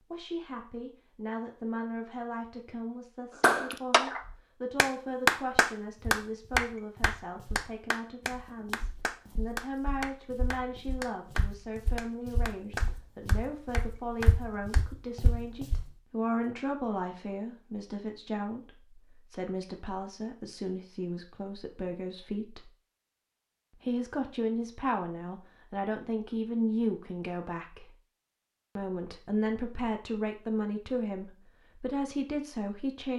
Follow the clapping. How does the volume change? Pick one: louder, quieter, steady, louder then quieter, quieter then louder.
quieter.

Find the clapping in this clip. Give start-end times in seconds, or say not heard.
3.4-14.8.